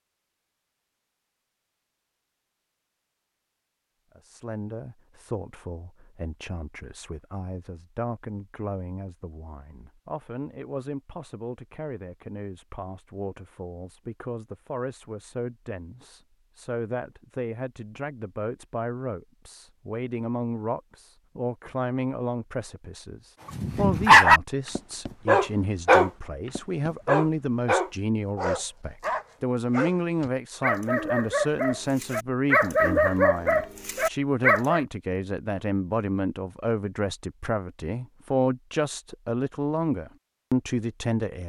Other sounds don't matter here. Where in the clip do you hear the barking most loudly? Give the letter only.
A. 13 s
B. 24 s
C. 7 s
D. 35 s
B.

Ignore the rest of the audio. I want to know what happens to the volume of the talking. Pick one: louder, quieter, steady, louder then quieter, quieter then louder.
louder.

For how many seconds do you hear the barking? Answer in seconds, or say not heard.
11 s.